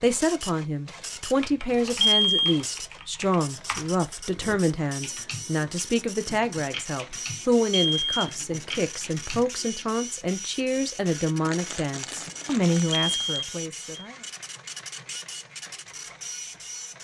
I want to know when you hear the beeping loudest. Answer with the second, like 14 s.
2 s.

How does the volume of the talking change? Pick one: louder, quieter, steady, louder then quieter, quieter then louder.
steady.